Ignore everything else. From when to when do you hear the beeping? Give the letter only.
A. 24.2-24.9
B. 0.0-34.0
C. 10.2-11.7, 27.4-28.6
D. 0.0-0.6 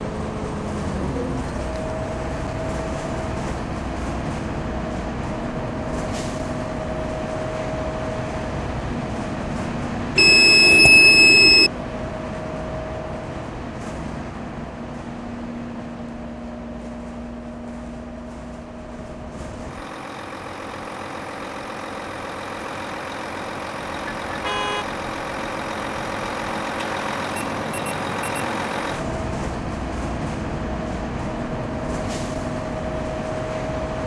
C.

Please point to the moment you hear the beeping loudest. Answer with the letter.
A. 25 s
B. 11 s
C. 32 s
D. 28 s
B.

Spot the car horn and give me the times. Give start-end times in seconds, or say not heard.
24.2-24.9.